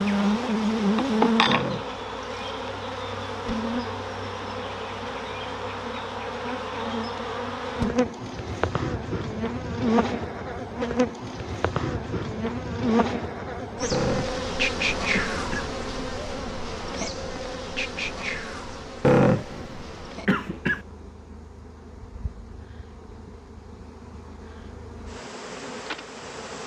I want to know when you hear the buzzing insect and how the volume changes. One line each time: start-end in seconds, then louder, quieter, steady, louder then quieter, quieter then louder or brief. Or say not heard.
0.0-26.6 quieter.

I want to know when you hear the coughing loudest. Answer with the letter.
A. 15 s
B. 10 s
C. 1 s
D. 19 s
D.